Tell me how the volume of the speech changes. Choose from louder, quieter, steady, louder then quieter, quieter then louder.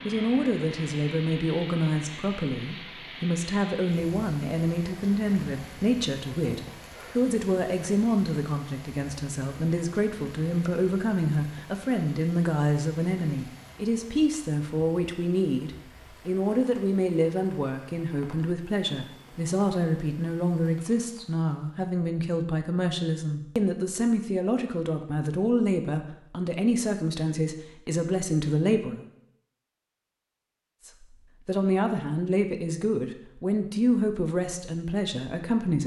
steady.